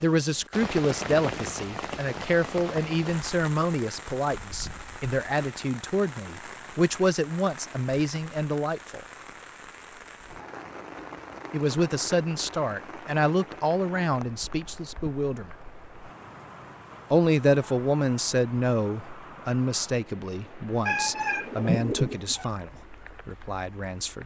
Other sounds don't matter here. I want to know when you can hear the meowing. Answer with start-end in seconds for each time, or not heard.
20.9-22.4.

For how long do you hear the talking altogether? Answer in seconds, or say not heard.
20 s.